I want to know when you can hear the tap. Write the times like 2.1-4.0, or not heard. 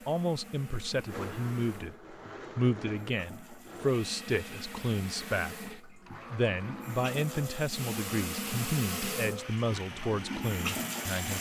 0.0-11.3.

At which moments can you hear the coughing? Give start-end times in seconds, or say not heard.
not heard.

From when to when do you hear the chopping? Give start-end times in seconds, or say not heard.
not heard.